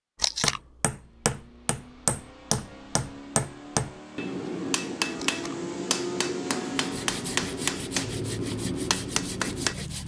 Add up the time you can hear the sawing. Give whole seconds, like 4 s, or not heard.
3 s.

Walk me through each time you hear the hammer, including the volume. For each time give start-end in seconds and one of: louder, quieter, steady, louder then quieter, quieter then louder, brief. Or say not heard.
0.4-9.8 steady.